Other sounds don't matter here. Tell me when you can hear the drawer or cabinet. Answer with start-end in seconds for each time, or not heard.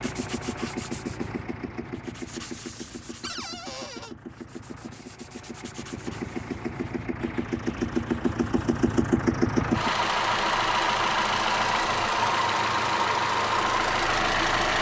3.2-4.2.